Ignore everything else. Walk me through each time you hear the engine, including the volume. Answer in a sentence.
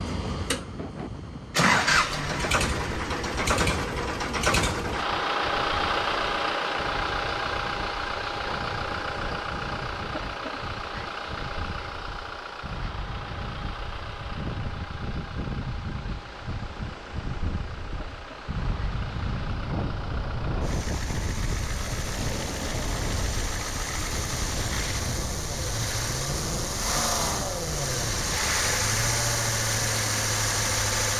The engine can be heard from 0.0 to 31.1 s, getting quieter then louder.